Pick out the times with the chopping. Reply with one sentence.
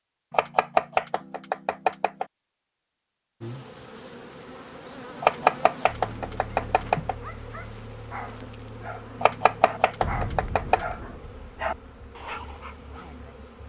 You can hear the chopping from 0.3 to 2.2 s, from 5.2 to 7.2 s and from 9.2 to 10.9 s.